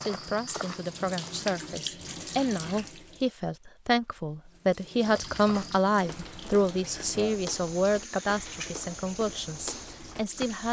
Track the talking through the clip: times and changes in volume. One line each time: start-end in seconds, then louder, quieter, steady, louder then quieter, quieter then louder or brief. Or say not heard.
0.0-10.6 louder then quieter.